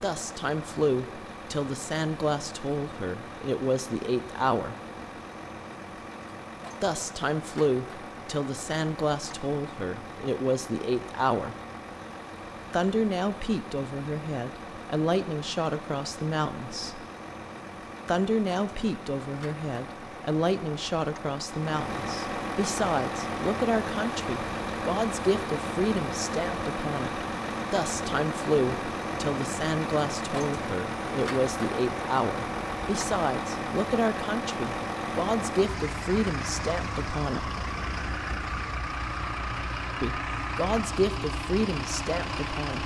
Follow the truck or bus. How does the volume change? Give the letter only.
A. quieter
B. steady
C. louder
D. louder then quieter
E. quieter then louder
C.